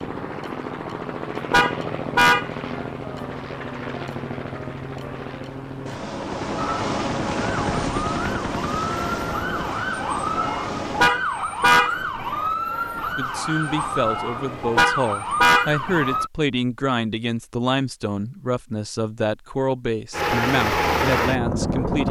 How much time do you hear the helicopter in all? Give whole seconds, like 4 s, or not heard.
13 s.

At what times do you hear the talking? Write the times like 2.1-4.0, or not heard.
13.2-22.0.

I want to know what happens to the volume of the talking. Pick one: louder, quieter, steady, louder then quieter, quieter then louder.
steady.